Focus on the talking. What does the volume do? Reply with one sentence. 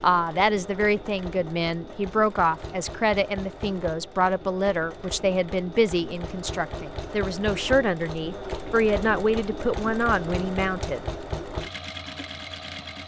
The volume of the talking stays about the same.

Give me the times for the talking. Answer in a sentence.
You can hear the talking from 0.0 to 11.0 s.